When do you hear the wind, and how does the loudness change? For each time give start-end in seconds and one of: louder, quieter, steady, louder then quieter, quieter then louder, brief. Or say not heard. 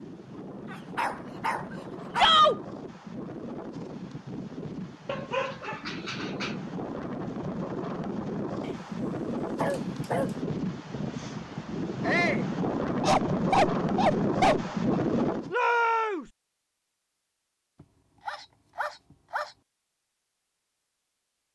0.0-15.6 louder.